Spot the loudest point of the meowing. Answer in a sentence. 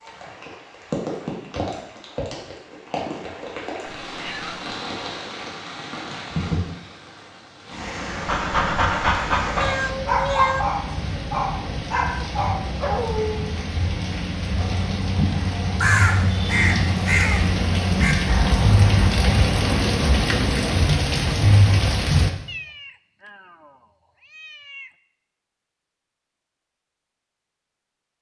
The loudest moment of the meowing is at 10 seconds.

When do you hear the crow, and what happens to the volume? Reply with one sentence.
The crow can be heard from 14.5 to 19.9 s, getting louder then quieter.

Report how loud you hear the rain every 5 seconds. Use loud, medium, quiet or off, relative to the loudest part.
medium, medium, medium, loud, loud, off.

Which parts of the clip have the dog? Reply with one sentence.
You can hear the dog from 8.1 to 13.4 s.